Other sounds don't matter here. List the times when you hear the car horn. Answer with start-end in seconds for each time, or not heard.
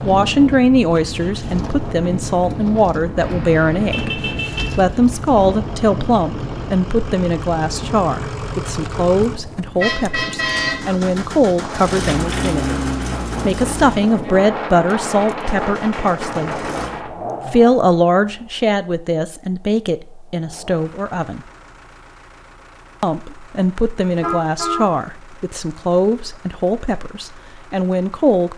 3.1-4.8, 9.8-11.1, 24.0-24.9.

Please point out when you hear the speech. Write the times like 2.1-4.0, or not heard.
0.0-12.8, 13.4-16.6, 17.4-21.4, 23.0-28.5.